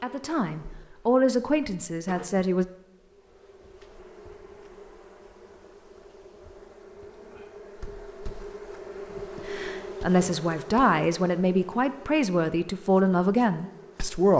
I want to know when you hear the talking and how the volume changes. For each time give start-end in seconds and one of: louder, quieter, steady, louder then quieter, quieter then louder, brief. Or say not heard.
0.0-2.6 brief
9.4-14.3 steady.